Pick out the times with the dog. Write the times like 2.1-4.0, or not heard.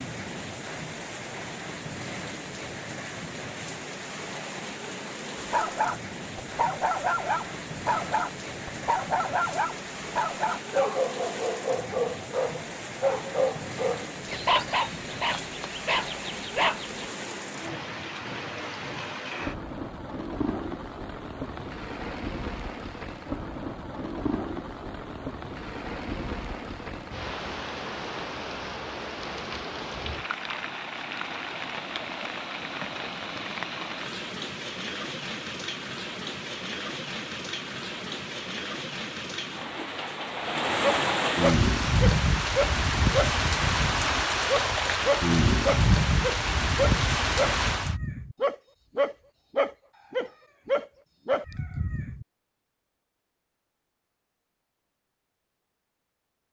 5.5-17.1, 40.8-52.2.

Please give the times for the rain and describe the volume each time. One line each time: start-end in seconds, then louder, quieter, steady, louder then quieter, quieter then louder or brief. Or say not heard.
0.0-48.0 louder.